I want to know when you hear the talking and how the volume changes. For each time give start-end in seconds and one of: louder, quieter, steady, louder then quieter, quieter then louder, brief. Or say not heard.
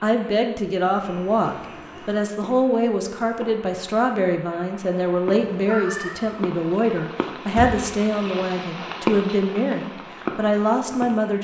0.0-11.3 steady.